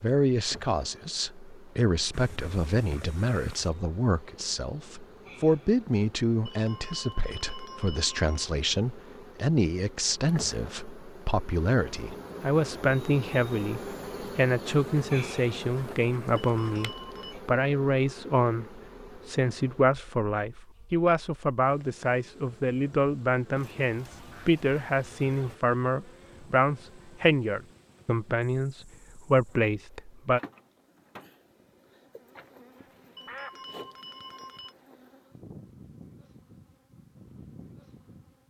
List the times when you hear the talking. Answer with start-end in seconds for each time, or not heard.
0.0-30.4.